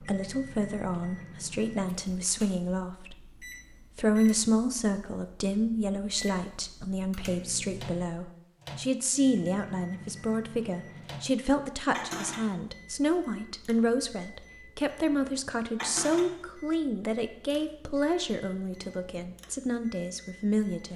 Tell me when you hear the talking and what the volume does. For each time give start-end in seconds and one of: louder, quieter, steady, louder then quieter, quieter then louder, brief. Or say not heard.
0.0-20.9 steady.